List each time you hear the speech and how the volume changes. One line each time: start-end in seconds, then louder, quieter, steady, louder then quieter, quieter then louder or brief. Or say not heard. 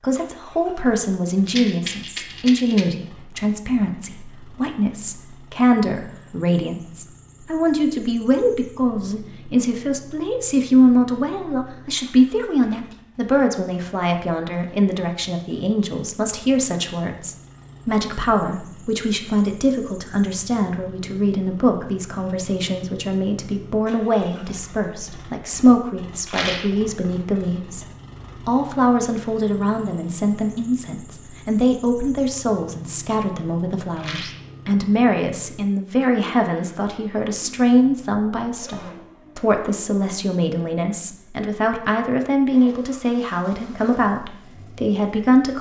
0.0-27.9 steady
28.4-45.5 steady.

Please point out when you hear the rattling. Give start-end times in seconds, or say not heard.
1.4-2.9, 26.2-26.8, 34.0-34.5.